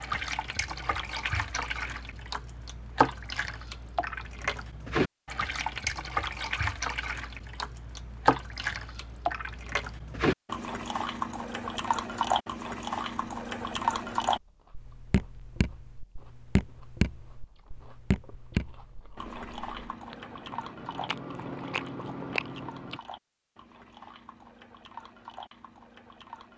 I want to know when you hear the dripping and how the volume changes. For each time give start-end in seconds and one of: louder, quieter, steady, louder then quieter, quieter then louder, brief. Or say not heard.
0.0-26.5 quieter.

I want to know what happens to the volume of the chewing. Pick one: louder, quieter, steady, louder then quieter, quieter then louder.
louder.